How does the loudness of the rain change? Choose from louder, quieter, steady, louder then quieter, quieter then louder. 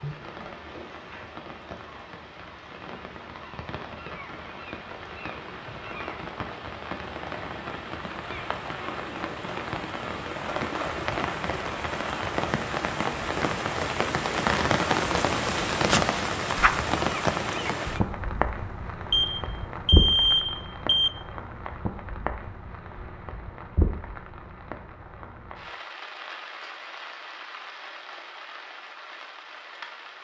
louder then quieter.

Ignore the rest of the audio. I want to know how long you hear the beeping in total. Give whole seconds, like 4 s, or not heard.
2 s.